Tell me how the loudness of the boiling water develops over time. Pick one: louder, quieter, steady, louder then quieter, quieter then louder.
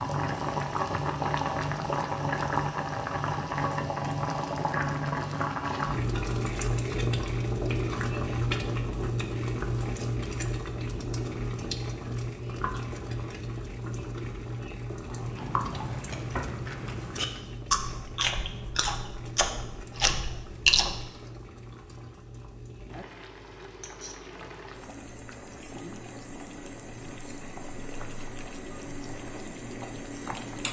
quieter.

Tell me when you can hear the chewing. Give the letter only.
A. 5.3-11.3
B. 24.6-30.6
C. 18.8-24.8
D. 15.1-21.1
D.